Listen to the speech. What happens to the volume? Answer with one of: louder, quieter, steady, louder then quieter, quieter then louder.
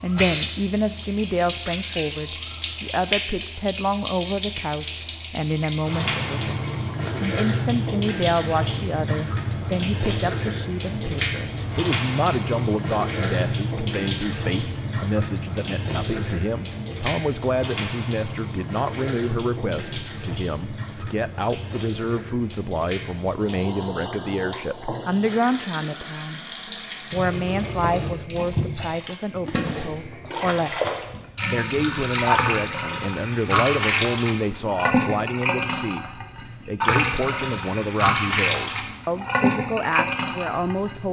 steady.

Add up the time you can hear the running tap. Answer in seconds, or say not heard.
41 s.